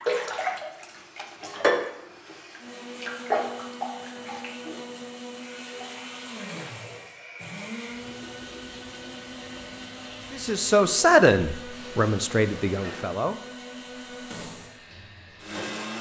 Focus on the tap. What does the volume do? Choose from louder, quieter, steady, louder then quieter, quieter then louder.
quieter.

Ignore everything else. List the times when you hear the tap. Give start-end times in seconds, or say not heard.
0.0-15.9.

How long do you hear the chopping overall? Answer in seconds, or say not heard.
not heard.